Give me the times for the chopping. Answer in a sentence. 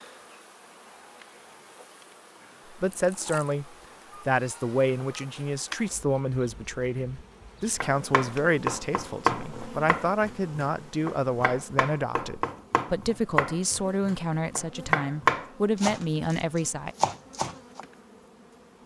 The chopping can be heard from 7.8 to 17.8 s.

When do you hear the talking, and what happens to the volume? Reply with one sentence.
You can hear the talking from 2.7 to 16.9 s, at a steady volume.